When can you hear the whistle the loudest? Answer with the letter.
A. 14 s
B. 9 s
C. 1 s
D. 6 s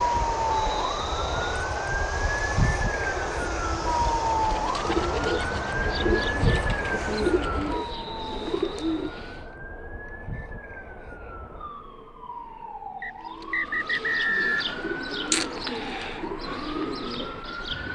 A.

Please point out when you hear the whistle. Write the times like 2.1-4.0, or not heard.
0.5-1.6, 7.8-9.2, 13.0-14.8.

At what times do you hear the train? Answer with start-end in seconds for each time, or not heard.
0.0-17.9.